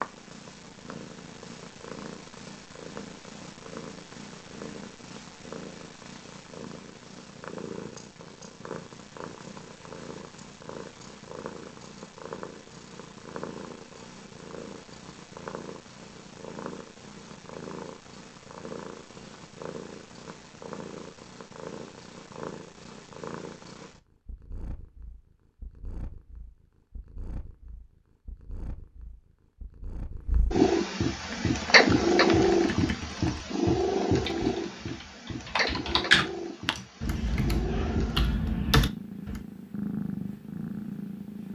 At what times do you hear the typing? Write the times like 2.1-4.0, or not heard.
31.1-39.4.